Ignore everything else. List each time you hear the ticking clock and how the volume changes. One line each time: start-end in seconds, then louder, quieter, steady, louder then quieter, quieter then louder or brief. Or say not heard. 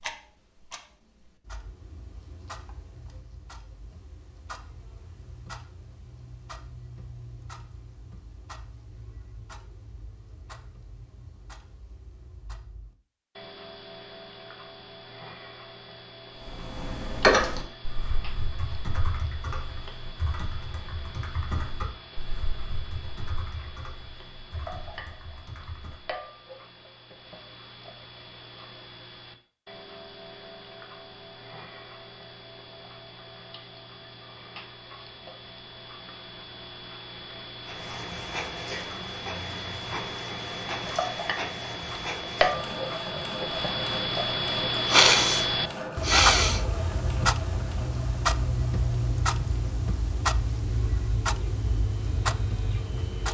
0.0-53.2 louder.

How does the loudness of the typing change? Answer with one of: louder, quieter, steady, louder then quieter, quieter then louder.
quieter.